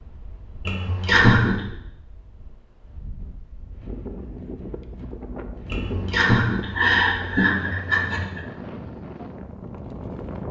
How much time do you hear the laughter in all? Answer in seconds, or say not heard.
4 s.